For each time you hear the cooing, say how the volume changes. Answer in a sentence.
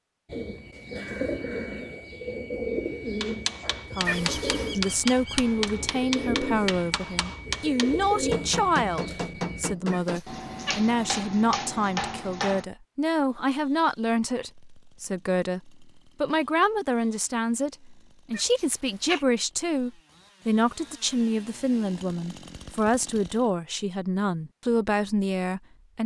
You can hear the cooing from 0.2 to 9.8 s, at a steady volume.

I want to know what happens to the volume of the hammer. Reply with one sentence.
The volume of the hammer stays about the same.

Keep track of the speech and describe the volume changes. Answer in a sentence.
The volume of the speech stays about the same.